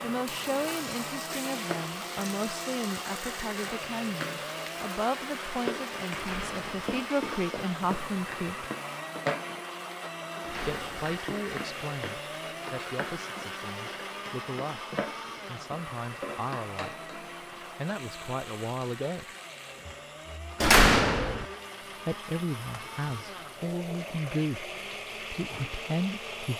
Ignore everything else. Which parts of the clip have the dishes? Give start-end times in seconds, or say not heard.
not heard.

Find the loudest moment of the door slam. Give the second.
21 s.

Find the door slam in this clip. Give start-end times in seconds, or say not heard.
6.2-7.0, 10.4-11.2, 20.6-21.4.